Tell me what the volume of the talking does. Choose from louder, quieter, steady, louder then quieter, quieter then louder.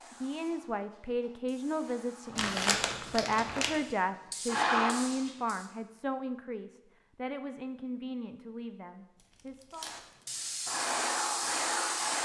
quieter.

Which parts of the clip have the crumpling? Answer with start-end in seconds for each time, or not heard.
2.4-3.8, 9.2-10.2.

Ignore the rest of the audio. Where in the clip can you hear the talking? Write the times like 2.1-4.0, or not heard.
0.1-9.9.